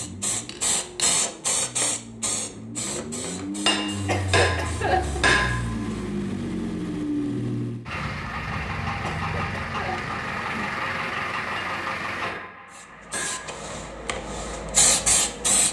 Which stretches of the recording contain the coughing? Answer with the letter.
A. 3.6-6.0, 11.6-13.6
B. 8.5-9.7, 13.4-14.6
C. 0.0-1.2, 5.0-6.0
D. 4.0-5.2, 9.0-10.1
D.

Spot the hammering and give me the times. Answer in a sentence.
The hammering can be heard from 3.6 to 6.0 s and from 11.6 to 13.6 s.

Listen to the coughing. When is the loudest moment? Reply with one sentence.
The loudest moment of the coughing is at 5 seconds.